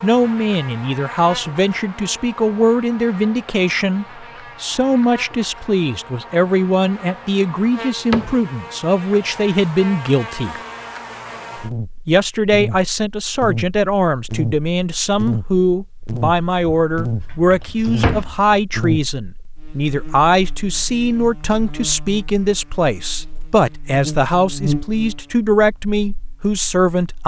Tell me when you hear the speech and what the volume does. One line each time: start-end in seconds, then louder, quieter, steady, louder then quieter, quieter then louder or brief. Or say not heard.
0.0-10.6 steady
12.1-27.2 steady.